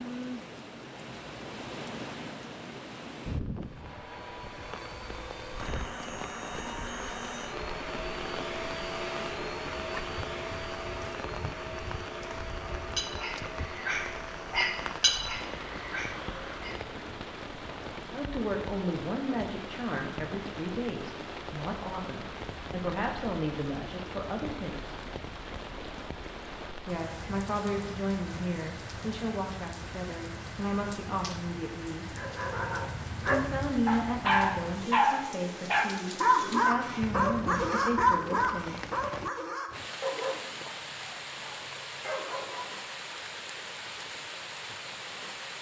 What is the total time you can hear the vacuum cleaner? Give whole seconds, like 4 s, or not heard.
13 s.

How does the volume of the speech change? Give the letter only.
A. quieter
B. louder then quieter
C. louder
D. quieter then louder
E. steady
E.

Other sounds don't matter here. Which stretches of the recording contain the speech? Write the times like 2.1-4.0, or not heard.
18.1-25.0, 26.9-32.2, 33.2-38.9.